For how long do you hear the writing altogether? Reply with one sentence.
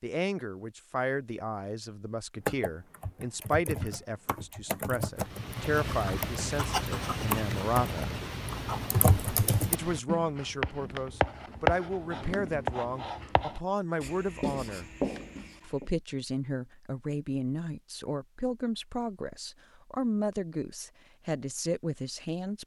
The writing can be heard for 11 seconds in total.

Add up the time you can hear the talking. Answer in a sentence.
The talking can be heard for 20 seconds in total.